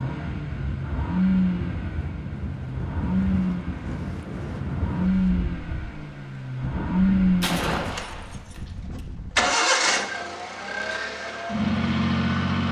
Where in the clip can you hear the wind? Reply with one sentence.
The wind can be heard from 0.1 to 9.6 s.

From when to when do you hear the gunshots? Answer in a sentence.
The gunshots can be heard from 7.4 to 9.0 s.